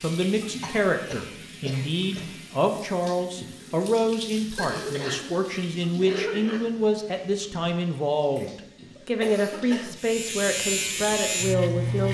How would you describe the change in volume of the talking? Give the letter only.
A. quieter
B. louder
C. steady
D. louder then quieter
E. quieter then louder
C.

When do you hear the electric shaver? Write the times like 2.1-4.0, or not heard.
0.0-2.5, 9.9-12.0.